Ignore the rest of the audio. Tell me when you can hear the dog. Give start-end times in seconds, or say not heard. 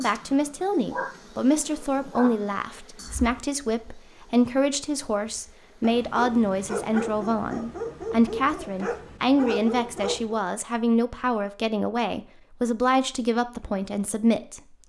0.0-3.4, 5.8-10.4.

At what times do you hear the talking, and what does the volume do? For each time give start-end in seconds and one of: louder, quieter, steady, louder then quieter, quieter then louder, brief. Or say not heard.
0.0-14.6 steady.